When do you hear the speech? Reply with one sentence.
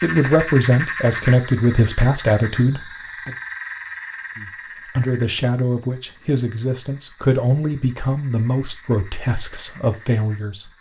You can hear the speech from 0.0 to 3.4 s and from 4.3 to 10.7 s.